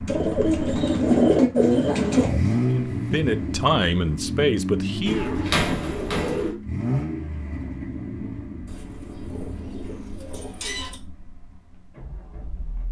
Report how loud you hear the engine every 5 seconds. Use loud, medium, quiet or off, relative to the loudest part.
loud, medium, quiet.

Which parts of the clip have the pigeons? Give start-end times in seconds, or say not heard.
0.1-2.4, 5.0-6.5, 8.7-11.0.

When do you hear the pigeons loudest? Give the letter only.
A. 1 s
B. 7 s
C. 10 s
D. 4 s
A.